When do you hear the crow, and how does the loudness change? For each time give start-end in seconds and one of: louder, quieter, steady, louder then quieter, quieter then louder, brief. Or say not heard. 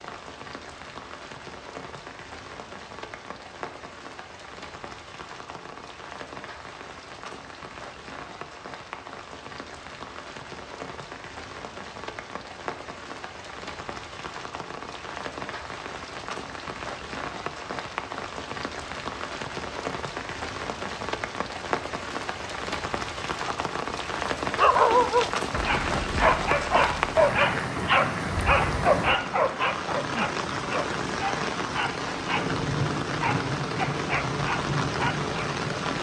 not heard.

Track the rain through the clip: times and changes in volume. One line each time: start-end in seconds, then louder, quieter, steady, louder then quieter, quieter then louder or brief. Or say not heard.
0.0-35.9 louder.